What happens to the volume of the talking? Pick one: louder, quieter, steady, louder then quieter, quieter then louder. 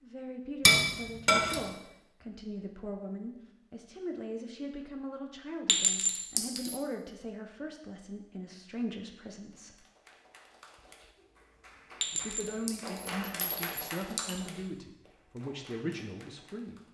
steady.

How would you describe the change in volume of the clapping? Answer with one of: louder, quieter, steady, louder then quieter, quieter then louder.
louder then quieter.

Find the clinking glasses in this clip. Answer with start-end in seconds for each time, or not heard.
0.6-1.6, 5.7-6.8, 12.0-14.4.